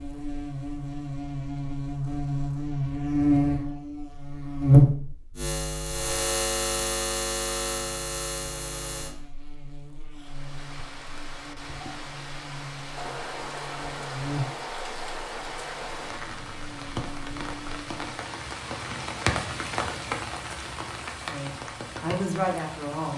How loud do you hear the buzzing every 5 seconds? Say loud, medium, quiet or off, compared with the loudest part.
loud, medium, quiet, quiet, off.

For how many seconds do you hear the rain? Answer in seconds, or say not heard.
13 s.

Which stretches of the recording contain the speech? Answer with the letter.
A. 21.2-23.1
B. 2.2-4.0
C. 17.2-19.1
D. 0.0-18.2
A.